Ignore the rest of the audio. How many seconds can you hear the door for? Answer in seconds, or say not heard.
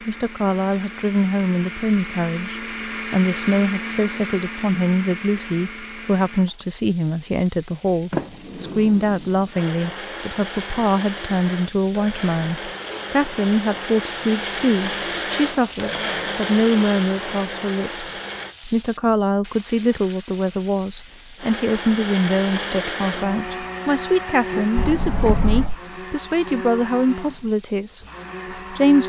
2 s.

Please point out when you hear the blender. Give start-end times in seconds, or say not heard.
0.0-6.5, 9.5-18.6, 21.4-29.0.